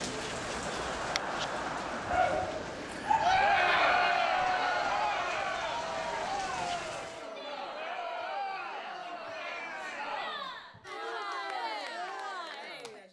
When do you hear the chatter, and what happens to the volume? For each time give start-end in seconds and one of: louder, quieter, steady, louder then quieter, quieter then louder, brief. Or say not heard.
0.0-13.0 louder then quieter.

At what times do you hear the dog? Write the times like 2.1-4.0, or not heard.
2.0-4.0.